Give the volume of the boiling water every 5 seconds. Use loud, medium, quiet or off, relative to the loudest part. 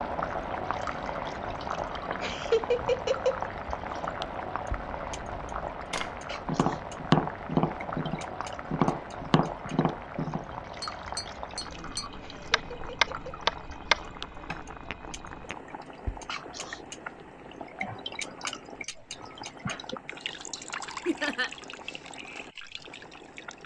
loud, loud, medium, medium, quiet.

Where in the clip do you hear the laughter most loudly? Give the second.
3 s.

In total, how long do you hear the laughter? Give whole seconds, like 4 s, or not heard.
3 s.